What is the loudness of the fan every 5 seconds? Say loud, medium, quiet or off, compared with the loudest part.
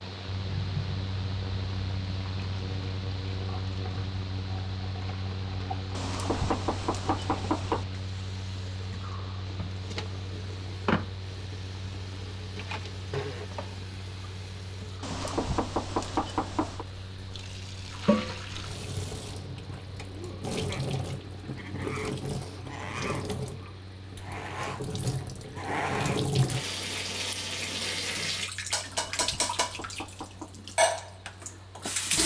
loud, loud, medium, medium, medium, quiet, quiet.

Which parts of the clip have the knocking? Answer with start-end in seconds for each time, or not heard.
5.9-7.8, 15.0-16.9, 28.9-30.6.